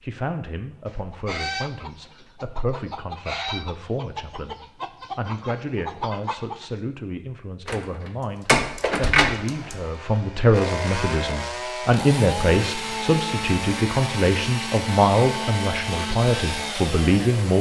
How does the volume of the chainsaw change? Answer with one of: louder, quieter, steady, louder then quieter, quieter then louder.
steady.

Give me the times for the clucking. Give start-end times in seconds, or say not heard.
0.8-6.7.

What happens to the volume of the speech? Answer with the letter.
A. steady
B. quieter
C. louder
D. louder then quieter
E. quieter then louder
C.